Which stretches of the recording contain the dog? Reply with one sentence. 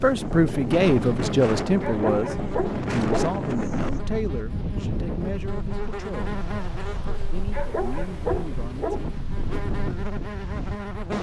You can hear the dog from 1.8 to 3.4 s and from 7.5 to 9.1 s.